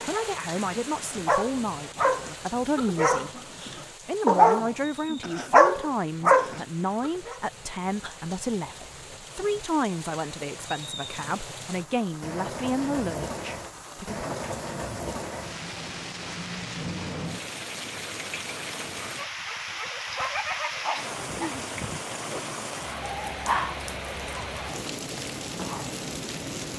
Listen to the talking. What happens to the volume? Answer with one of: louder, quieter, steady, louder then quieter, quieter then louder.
steady.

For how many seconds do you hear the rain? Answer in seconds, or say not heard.
27 s.